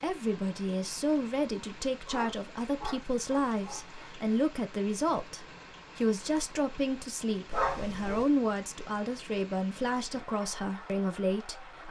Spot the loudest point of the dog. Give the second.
8 s.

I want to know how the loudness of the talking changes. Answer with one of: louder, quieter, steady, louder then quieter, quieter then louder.
steady.